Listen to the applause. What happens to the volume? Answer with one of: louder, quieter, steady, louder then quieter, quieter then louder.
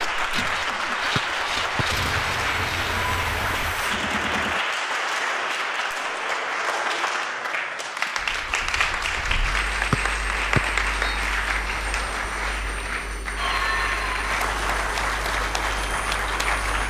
steady.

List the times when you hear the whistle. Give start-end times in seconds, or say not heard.
1.1-1.9, 9.9-11.2.